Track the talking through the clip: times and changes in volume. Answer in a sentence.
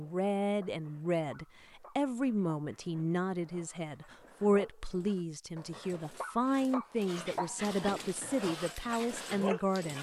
You can hear the talking from 0.0 to 9.9 s, at a steady volume.